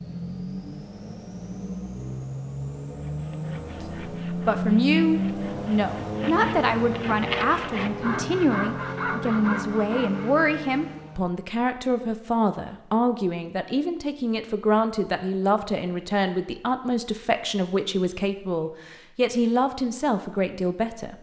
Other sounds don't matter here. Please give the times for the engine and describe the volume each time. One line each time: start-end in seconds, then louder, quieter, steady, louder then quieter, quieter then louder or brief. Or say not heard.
0.0-11.3 louder then quieter.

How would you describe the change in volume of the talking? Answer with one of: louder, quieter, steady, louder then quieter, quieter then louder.
steady.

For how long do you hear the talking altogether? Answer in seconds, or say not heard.
17 s.